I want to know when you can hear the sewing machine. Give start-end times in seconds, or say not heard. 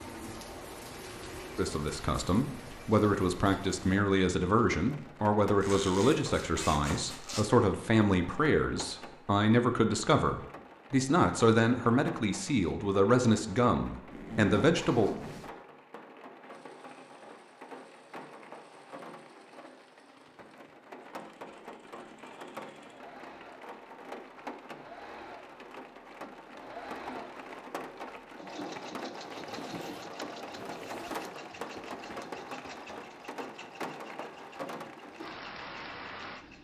16.4-36.5.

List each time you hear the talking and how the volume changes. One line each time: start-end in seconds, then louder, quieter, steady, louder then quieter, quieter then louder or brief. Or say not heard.
1.6-15.1 steady.